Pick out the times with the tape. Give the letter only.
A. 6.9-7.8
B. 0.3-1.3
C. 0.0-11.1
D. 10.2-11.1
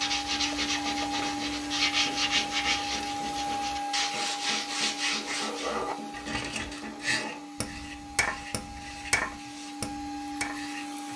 B.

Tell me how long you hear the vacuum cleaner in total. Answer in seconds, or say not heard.
11 s.